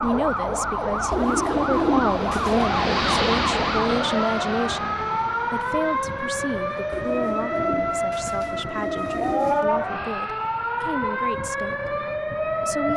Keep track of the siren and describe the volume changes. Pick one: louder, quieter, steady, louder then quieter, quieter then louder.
steady.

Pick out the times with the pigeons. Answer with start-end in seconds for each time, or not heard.
1.1-2.7, 6.9-9.7.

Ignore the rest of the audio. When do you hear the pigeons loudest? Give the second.
2 s.